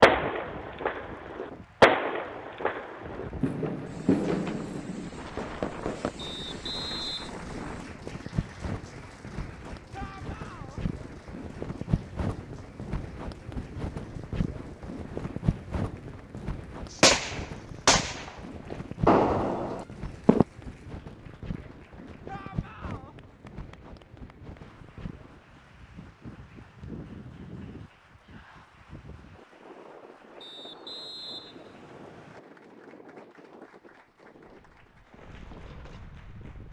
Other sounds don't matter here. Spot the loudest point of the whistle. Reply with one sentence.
The volume of the whistle peaks at 7 seconds.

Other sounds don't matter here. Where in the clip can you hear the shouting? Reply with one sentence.
The shouting can be heard from 9.9 to 10.8 s and from 22.2 to 23.1 s.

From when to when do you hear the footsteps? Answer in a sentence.
You can't hear the footsteps here.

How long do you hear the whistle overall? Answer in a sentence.
The whistle can be heard for 3 seconds in total.